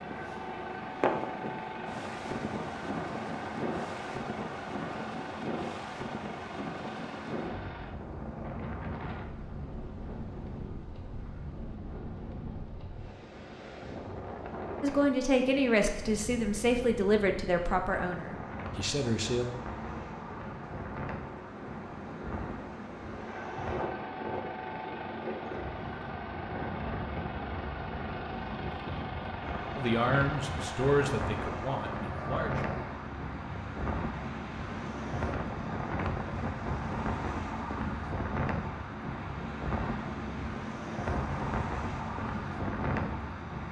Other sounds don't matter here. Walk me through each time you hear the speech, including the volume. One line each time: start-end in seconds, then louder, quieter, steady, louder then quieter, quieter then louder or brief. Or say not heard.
14.8-19.4 quieter
29.8-32.6 brief.